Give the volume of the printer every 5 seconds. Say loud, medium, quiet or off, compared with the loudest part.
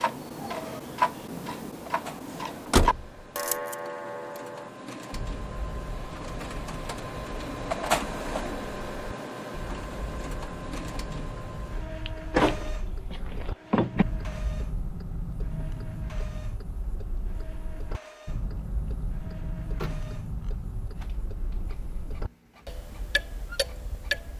medium, loud, medium, quiet, quiet.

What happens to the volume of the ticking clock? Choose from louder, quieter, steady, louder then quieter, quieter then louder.
quieter then louder.